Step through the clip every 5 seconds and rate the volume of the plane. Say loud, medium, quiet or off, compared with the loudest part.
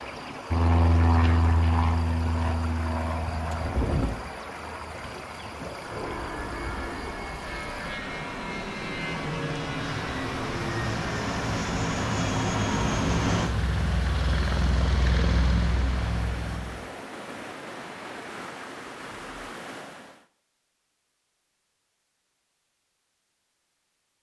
loud, medium, loud, loud, off.